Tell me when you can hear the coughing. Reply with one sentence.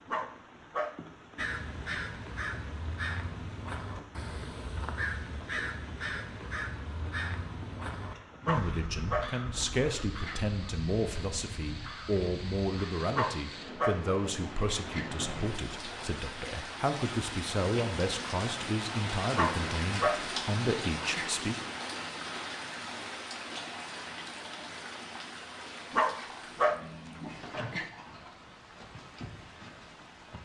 You can't hear the coughing here.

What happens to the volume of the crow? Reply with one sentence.
The volume of the crow goes down.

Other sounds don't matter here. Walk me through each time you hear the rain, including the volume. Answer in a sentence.
You can hear the rain from 0.0 to 30.3 s, getting louder then quieter.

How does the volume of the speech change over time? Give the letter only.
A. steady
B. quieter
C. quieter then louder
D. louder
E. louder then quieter
A.